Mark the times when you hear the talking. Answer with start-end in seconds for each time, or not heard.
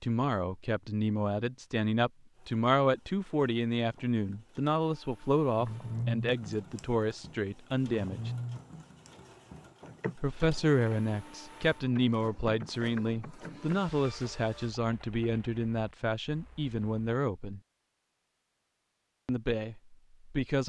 0.0-8.3, 10.2-17.6, 19.2-20.6.